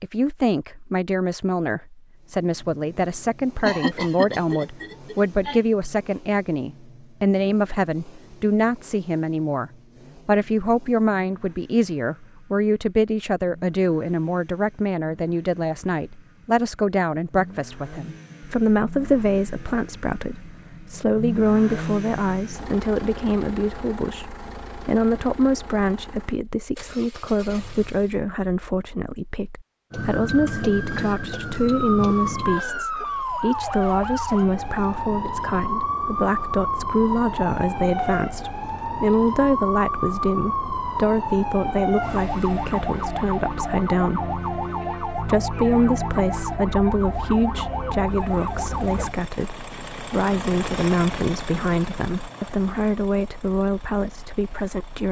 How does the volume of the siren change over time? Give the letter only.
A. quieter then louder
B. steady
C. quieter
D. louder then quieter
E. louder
B.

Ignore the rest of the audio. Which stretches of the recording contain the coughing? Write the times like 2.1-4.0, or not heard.
3.6-5.6.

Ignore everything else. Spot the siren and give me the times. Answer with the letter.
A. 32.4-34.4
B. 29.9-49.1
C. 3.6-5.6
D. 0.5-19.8
B.